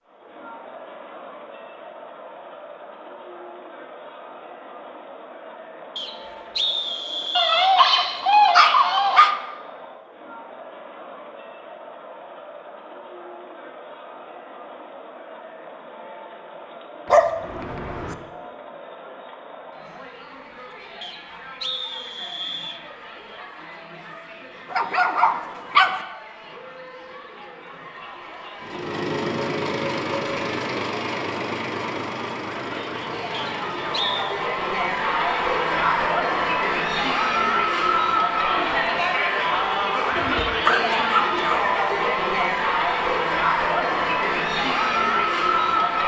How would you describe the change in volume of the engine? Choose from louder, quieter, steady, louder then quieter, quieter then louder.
quieter.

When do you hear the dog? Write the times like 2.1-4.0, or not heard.
7.3-9.3, 17.1-18.1, 24.7-26.0, 40.1-41.6.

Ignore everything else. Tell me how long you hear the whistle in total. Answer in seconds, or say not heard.
5 s.